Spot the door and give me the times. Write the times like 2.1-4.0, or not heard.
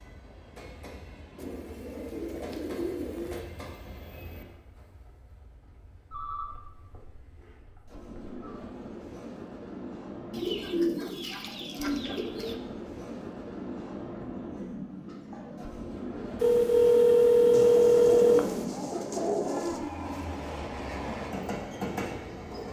not heard.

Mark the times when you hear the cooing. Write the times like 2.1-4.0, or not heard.
1.4-3.5, 10.3-12.6, 17.5-19.8.